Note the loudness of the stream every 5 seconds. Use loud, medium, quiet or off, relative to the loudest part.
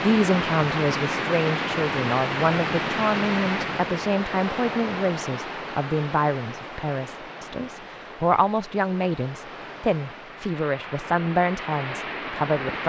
loud, medium, medium.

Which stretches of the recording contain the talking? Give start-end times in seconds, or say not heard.
0.0-12.8.